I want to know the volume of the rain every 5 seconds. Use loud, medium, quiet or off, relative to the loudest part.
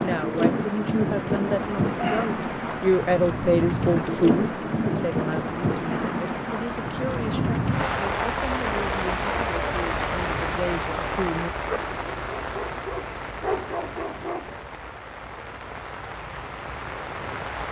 loud, loud, medium, medium.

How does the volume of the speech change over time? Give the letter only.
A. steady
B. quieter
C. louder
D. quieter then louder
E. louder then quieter
E.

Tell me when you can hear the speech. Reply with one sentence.
The speech can be heard from 0.0 to 11.5 s.